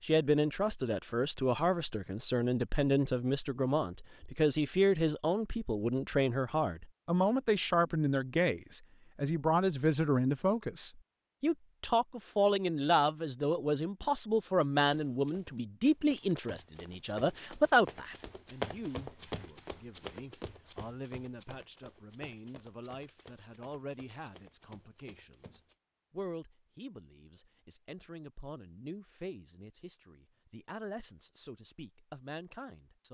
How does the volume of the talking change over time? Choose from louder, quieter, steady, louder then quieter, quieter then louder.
quieter.